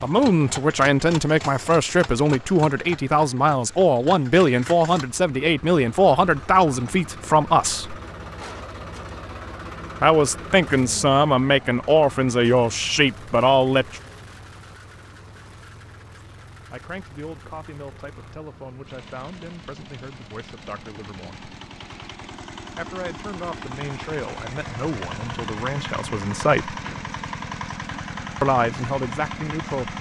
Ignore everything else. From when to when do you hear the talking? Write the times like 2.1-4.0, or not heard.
0.0-8.0, 10.0-14.0, 16.7-21.4, 22.8-26.8, 28.4-29.9.